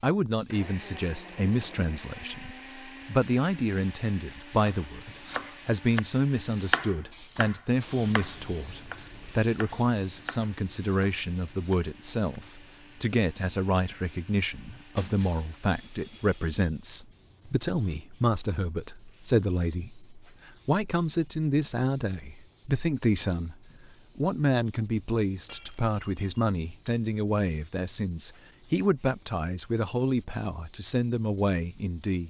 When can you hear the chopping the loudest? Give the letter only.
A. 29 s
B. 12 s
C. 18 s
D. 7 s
D.